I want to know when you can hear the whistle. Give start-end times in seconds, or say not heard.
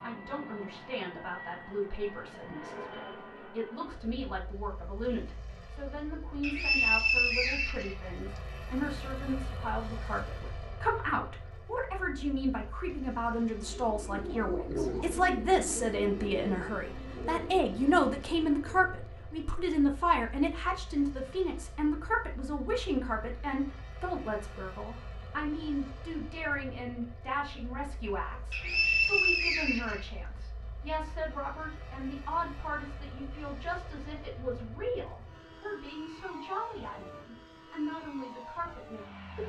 6.4-8.0, 28.5-30.1.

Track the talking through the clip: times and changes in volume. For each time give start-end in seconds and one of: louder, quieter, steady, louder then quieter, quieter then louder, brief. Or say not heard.
0.0-39.4 louder then quieter.